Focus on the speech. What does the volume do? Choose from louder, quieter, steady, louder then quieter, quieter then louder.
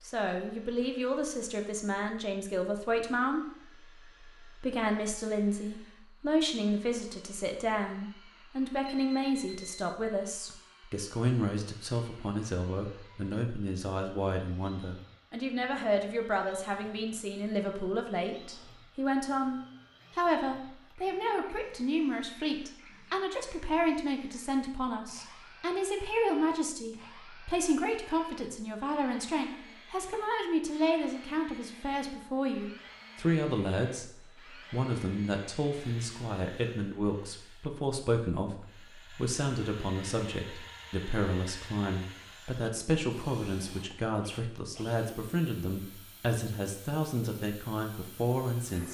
steady.